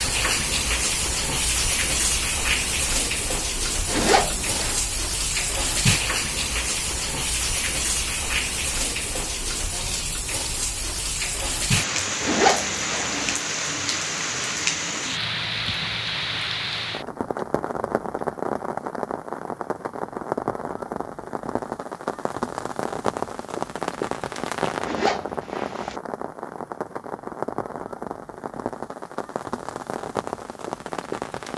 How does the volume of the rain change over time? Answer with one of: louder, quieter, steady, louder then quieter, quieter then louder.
quieter.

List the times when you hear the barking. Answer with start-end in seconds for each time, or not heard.
not heard.